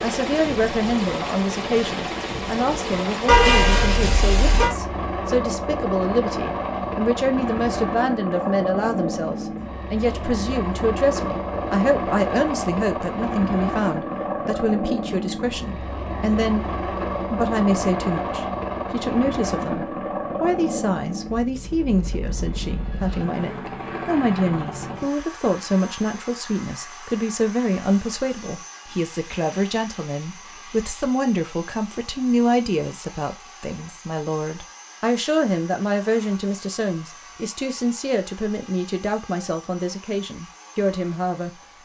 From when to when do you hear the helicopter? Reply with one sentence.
You can hear the helicopter from 0.0 to 41.8 s.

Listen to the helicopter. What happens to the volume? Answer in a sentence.
The volume of the helicopter goes down.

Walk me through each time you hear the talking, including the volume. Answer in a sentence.
The talking can be heard from 0.0 to 16.6 s, at a steady volume; and from 17.3 to 41.5 s, at a steady volume.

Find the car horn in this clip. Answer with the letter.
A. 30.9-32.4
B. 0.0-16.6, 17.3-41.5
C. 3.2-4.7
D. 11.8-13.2
C.